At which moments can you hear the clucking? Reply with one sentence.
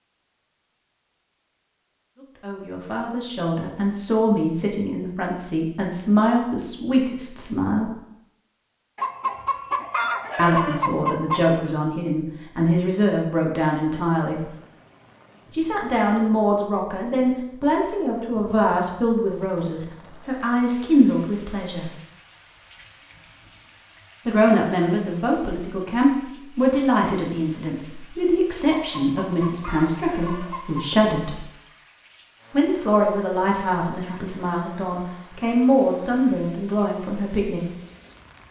You can hear the clucking from 8.9 to 11.4 s and from 28.9 to 31.0 s.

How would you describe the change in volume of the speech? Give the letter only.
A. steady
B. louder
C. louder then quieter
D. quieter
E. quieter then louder
A.